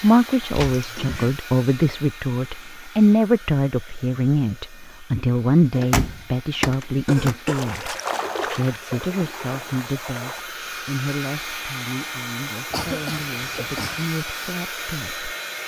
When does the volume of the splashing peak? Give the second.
8 s.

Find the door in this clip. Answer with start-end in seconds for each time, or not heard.
5.8-7.3.